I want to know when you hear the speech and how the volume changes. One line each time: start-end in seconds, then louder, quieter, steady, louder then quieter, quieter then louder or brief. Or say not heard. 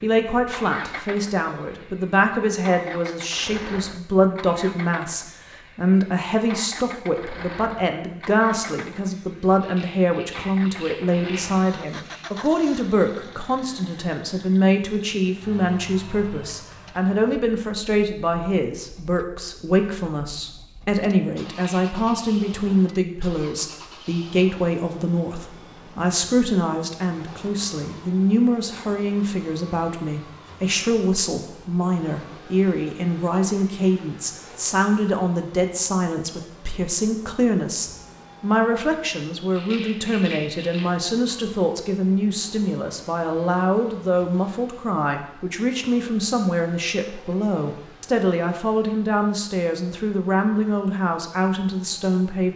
0.0-52.5 steady.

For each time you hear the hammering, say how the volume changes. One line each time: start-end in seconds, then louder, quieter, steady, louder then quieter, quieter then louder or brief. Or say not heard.
not heard.